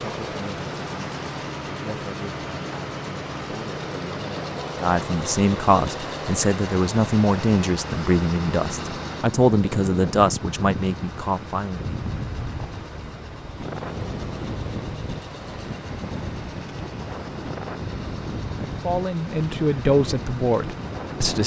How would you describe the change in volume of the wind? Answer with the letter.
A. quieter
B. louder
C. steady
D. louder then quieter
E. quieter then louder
C.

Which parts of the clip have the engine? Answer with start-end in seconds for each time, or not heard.
0.0-21.4.